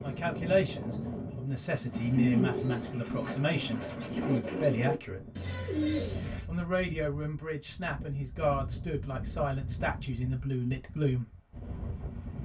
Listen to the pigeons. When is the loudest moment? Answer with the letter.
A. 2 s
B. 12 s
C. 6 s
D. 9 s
A.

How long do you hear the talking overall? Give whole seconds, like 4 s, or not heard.
10 s.